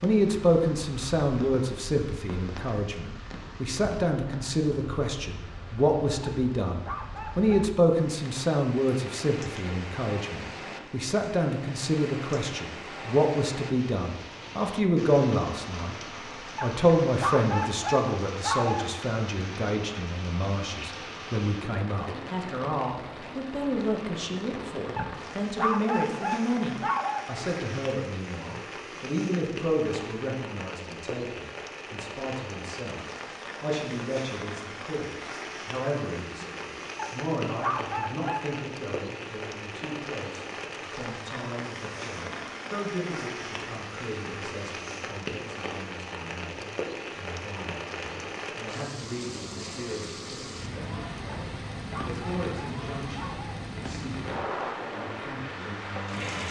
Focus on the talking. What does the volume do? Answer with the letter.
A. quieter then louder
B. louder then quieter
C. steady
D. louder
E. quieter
E.